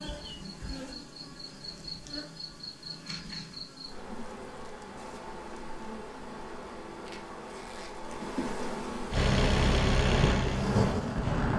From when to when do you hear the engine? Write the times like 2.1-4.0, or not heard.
9.1-11.5.